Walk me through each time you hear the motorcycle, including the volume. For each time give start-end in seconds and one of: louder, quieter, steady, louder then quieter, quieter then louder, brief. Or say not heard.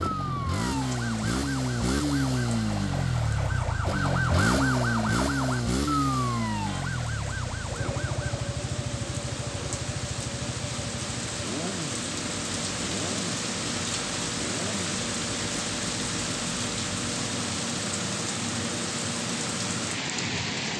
0.0-20.7 quieter.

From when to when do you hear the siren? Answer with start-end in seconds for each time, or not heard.
0.0-8.3.